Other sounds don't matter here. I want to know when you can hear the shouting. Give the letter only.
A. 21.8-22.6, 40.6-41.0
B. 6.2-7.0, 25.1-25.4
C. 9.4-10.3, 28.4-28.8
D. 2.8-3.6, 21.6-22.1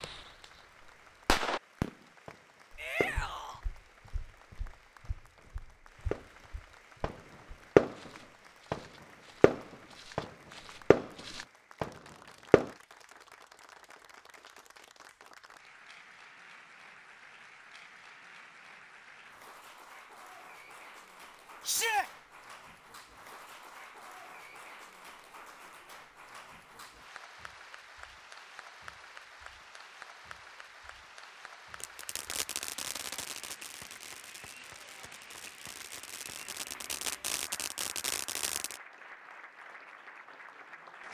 D.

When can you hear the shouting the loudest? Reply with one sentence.
The volume of the shouting peaks at 22 seconds.